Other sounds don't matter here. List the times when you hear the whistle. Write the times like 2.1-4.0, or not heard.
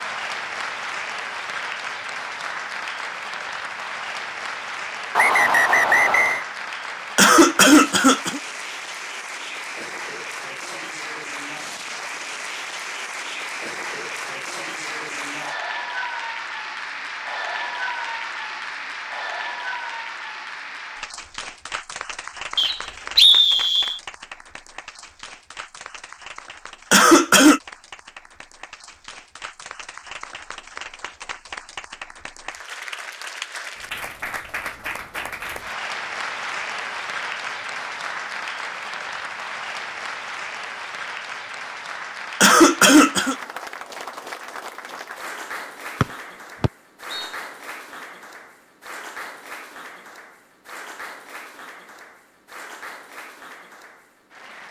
5.2-6.5, 22.6-24.0, 46.0-47.3.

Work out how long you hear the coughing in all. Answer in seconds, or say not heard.
3 s.